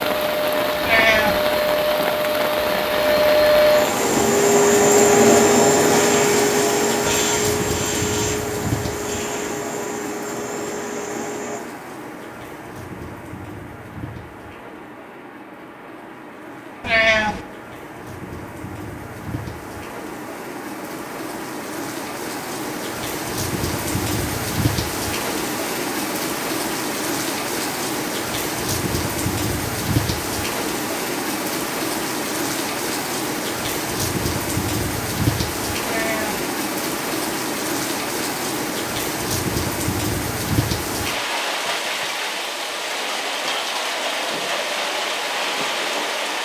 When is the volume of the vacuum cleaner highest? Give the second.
5 s.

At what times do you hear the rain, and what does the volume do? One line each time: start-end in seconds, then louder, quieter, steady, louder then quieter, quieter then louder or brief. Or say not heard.
0.0-46.3 quieter then louder.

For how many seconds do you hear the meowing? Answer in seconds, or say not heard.
2 s.